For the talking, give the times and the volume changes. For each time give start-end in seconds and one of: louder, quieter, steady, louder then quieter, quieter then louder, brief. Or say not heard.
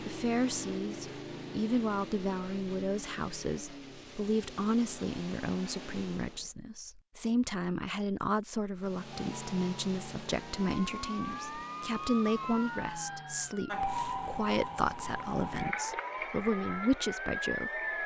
0.0-18.0 steady.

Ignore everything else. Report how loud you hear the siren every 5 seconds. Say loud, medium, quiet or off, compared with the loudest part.
off, off, loud, loud.